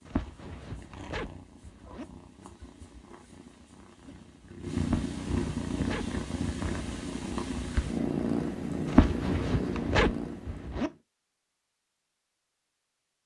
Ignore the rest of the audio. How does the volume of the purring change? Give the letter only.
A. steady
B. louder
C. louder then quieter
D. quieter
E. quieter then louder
B.